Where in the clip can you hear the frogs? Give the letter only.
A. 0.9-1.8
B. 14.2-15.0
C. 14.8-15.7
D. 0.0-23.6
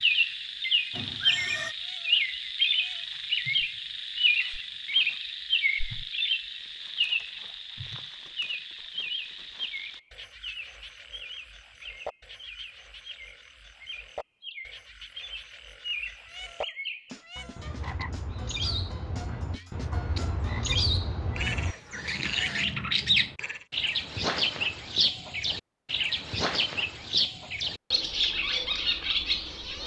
D.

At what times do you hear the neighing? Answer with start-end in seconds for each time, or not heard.
0.9-1.8.